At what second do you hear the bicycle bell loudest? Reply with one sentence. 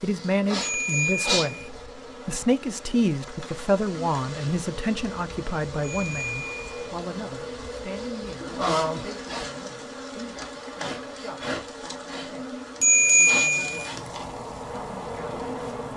The loudest moment of the bicycle bell is at 13 seconds.